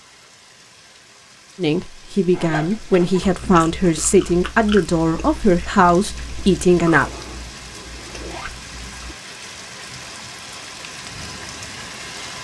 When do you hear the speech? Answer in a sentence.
The speech can be heard from 1.6 to 7.0 s.